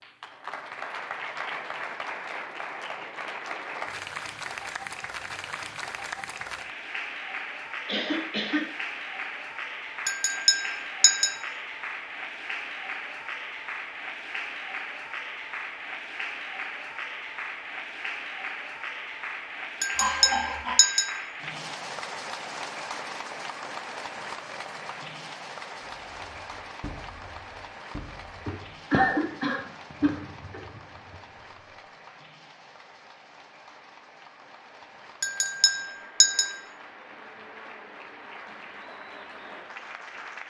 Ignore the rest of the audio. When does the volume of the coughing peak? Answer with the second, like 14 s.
29 s.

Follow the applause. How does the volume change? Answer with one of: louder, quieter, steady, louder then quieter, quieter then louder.
quieter.